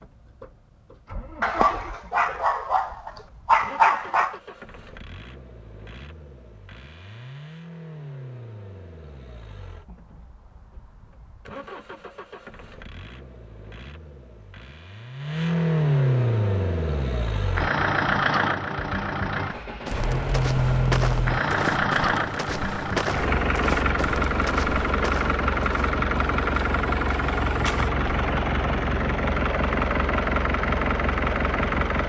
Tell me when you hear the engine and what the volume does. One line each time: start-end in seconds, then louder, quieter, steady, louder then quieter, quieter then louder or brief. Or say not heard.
0.0-32.0 louder.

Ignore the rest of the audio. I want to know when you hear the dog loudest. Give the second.
4 s.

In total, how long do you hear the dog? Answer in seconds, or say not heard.
3 s.